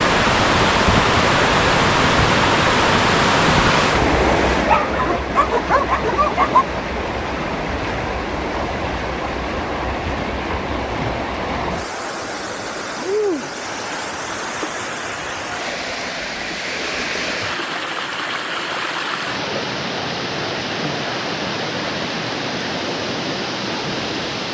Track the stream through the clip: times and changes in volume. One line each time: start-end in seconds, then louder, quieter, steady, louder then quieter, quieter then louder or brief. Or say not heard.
0.0-24.4 quieter.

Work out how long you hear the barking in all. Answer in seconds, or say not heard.
2 s.